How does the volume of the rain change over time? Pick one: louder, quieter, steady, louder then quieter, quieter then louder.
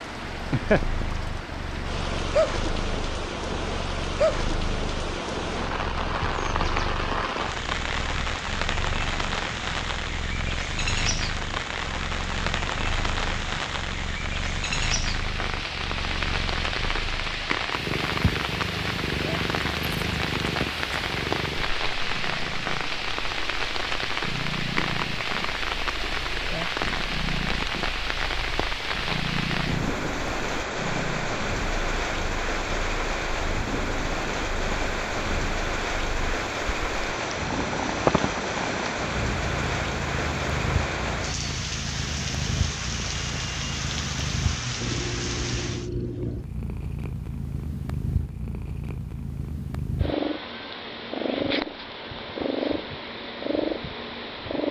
steady.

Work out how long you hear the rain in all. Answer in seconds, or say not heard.
46 s.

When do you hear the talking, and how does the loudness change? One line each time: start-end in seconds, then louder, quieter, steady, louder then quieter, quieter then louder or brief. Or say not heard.
not heard.